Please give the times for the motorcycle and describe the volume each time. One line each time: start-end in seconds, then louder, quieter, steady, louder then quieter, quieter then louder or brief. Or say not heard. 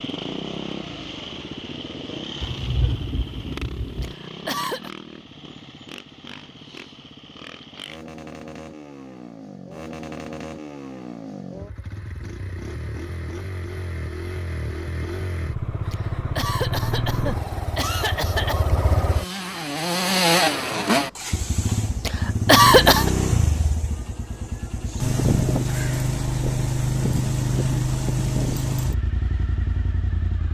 0.0-30.4 louder.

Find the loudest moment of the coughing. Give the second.
23 s.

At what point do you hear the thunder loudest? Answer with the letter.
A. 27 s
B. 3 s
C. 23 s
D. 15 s
B.